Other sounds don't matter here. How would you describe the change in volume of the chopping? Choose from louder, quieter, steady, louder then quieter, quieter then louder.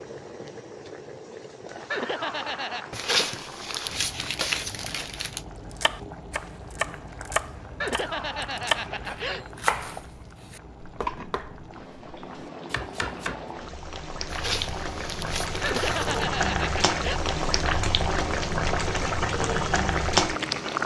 quieter.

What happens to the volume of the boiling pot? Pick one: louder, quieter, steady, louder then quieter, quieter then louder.
louder.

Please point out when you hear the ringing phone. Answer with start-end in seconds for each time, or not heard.
1.9-2.9, 7.8-9.5, 15.6-17.2.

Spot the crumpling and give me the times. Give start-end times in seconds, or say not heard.
2.9-5.4, 14.2-16.1.